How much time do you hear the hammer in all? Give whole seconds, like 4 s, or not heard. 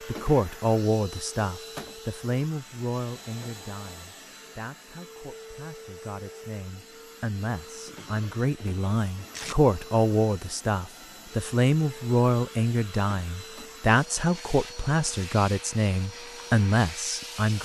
not heard.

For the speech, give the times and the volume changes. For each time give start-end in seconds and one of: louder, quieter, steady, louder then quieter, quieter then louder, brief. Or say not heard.
0.1-17.6 quieter then louder.